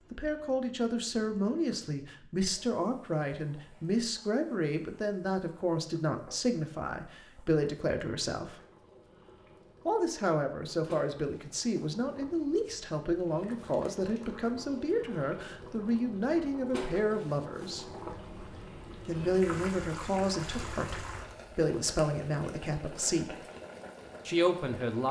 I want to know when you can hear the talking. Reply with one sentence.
You can hear the talking from 0.1 to 8.6 s, from 9.8 to 17.9 s, from 19.1 to 23.4 s and from 24.2 to 25.0 s.